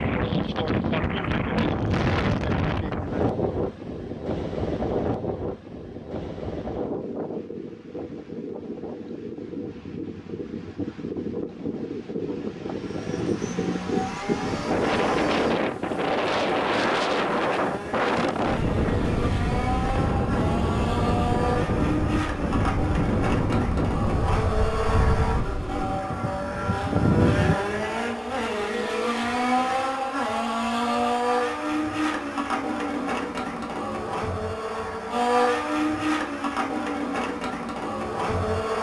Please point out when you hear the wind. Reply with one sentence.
You can hear the wind from 0.0 to 27.6 s.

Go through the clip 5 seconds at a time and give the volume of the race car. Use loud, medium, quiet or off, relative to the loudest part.
off, off, medium, medium, loud, loud, loud, loud.